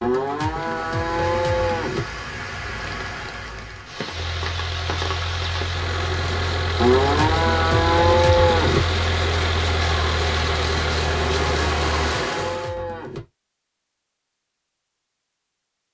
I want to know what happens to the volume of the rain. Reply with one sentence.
The loudness of the rain goes up.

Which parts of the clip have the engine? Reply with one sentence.
You can hear the engine from 4.1 to 12.0 s.